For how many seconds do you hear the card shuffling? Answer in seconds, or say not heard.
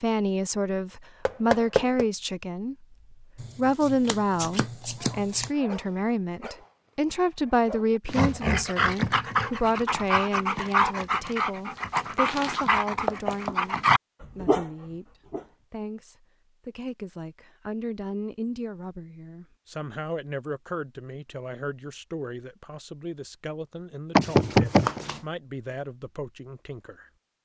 5 s.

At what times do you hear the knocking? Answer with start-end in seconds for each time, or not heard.
1.2-2.0, 13.1-13.6, 24.1-25.0.